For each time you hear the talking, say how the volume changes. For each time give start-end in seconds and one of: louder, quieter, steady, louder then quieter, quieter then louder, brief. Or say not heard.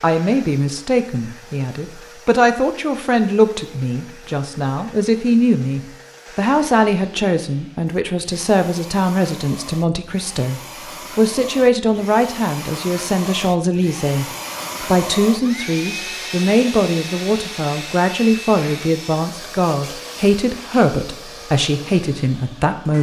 0.0-22.9 steady.